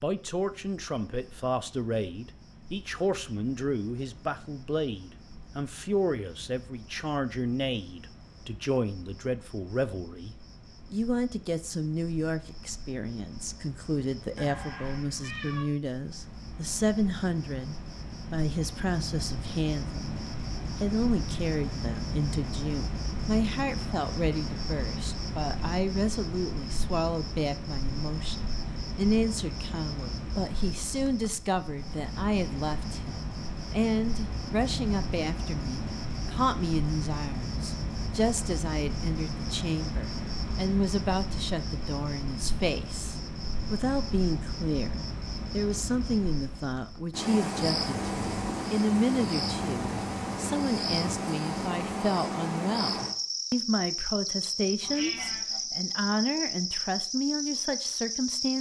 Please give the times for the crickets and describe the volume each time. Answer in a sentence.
The crickets can be heard from 0.0 to 58.5 s, getting louder.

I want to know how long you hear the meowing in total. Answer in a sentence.
The meowing can be heard for 2 seconds in total.